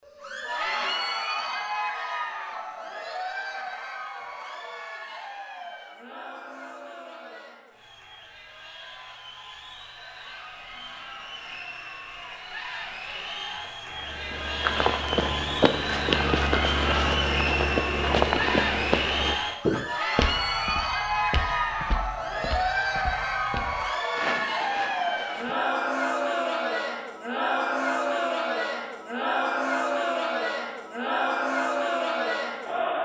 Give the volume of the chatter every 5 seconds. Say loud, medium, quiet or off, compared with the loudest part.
medium, quiet, medium, loud, loud, loud, loud.